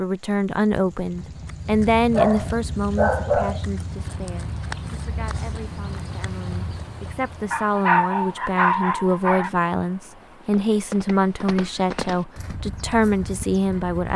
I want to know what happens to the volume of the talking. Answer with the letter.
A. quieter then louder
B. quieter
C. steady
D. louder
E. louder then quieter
A.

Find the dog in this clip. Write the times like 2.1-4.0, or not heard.
2.1-3.6, 7.5-9.5.